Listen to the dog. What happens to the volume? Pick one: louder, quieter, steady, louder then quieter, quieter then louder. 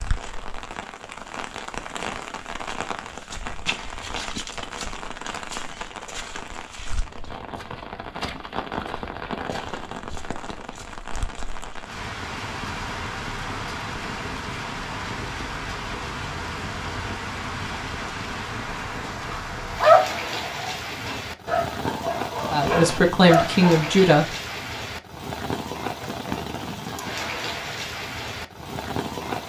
louder.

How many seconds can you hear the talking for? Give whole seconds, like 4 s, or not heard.
2 s.